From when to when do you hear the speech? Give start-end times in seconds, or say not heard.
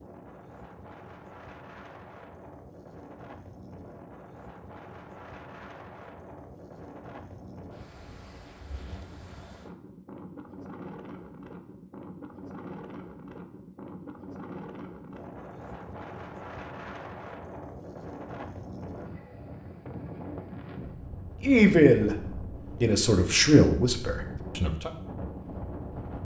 21.4-24.9.